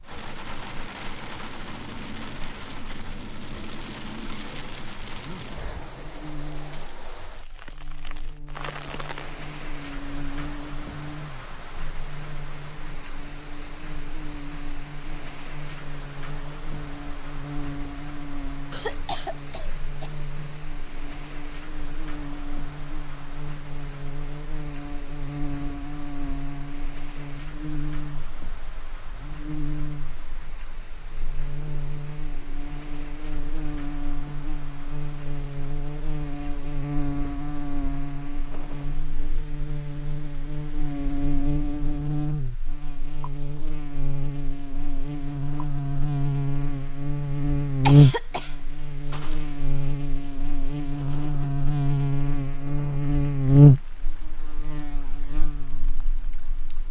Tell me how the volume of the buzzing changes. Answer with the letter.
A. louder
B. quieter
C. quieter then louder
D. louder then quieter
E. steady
A.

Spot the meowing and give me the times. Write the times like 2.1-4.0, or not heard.
not heard.